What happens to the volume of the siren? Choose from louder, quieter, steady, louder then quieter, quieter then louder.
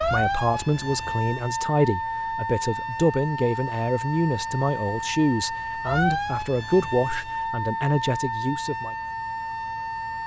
steady.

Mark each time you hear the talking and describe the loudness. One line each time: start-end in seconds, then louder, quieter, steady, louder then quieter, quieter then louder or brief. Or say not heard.
0.1-8.9 steady.